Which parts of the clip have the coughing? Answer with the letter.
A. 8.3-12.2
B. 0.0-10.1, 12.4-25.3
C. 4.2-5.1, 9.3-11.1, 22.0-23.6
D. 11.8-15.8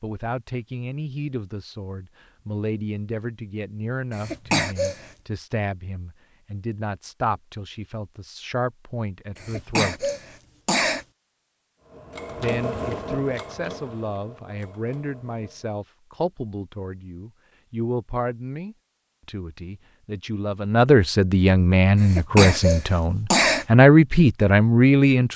C.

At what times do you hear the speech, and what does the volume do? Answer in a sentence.
You can hear the speech from 0.0 to 10.1 s, at a steady volume; and from 12.4 to 25.3 s, getting louder.